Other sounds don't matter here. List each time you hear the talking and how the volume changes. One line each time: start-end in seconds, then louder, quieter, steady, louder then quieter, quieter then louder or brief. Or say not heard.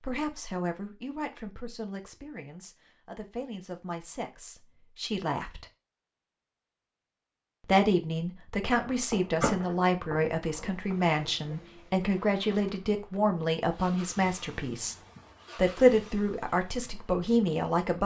0.0-5.7 quieter then louder
7.7-14.9 steady
15.6-18.0 brief.